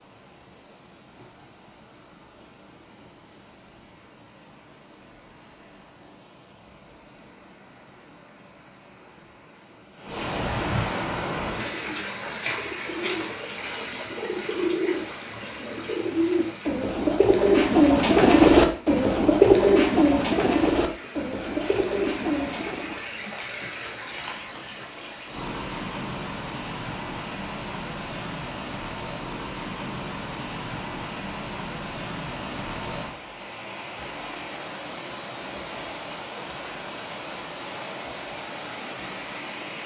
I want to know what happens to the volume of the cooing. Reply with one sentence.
The volume of the cooing goes up, then down.